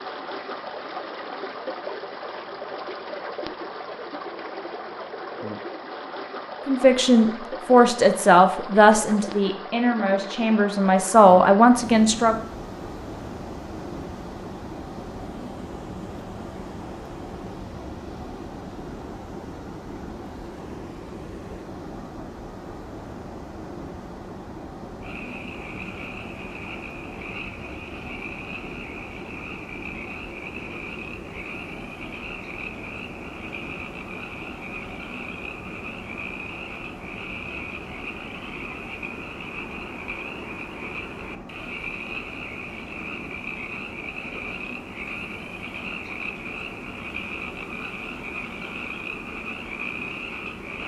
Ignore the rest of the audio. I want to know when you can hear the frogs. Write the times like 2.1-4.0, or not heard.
25.0-50.8.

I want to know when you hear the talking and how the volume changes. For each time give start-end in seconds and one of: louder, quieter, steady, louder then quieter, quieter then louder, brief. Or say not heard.
6.7-12.3 quieter then louder.